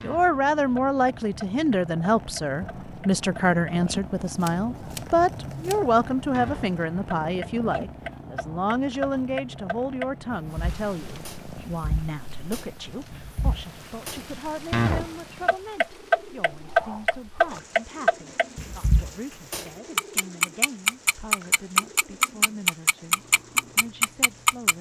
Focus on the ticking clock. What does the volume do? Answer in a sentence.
The loudness of the ticking clock goes up.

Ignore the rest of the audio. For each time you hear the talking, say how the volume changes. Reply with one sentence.
The talking can be heard from 0.0 to 24.7 s, getting quieter.